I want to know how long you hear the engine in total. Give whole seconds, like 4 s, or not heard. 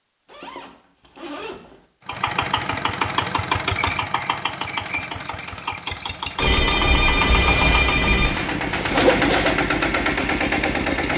9 s.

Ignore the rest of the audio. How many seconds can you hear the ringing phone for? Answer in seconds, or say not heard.
2 s.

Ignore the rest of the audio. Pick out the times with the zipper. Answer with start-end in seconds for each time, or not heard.
0.2-1.9, 8.2-9.6.